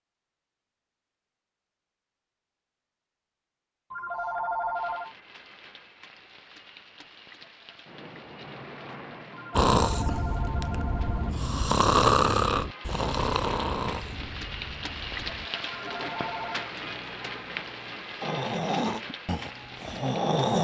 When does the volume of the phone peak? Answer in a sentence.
The loudest moment of the phone is at 5 seconds.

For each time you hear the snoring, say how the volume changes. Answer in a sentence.
You can hear the snoring from 9.6 to 15.5 s, getting louder then quieter; and briefly from 18.2 to 20.6 s.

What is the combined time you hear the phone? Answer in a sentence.
You can hear the phone for 4 seconds altogether.